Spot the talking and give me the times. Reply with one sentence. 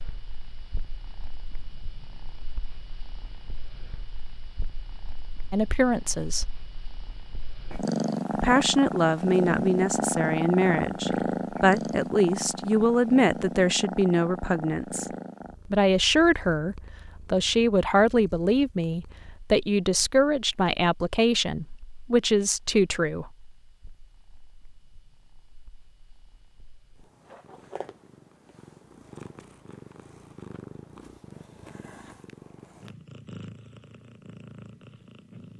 The talking can be heard from 5.5 to 6.5 s, from 8.3 to 15.1 s and from 15.7 to 23.3 s.